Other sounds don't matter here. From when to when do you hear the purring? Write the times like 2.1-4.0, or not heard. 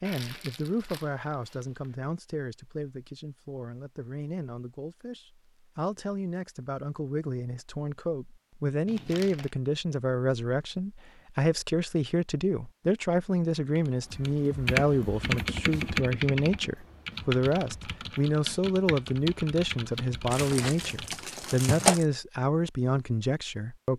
not heard.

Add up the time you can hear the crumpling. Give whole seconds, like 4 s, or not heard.
4 s.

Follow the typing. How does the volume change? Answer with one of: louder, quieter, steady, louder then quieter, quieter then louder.
quieter.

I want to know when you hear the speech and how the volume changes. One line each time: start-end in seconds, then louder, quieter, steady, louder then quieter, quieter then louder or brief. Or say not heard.
0.0-23.9 louder.